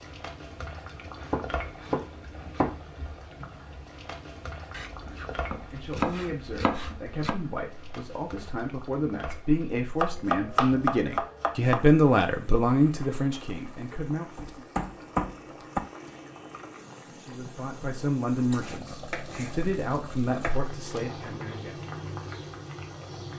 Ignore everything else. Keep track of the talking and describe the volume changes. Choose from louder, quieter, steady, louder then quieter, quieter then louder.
louder then quieter.